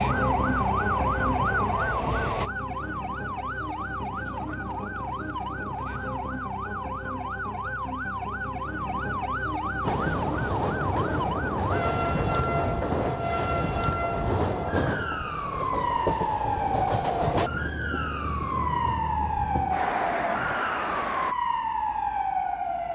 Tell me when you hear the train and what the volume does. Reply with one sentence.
The train can be heard briefly from 0.0 to 2.5 s; and from 9.8 to 21.4 s, at a steady volume.